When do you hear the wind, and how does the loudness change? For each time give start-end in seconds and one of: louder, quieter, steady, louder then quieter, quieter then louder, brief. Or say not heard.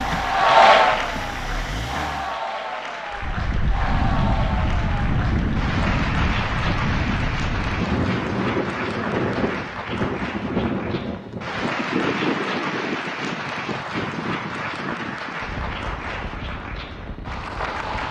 3.1-18.0 quieter.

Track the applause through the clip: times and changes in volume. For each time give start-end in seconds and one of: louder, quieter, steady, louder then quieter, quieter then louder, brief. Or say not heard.
0.0-18.0 quieter.